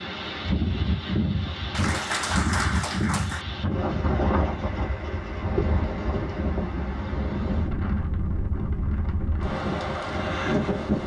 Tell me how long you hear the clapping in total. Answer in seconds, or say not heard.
2 s.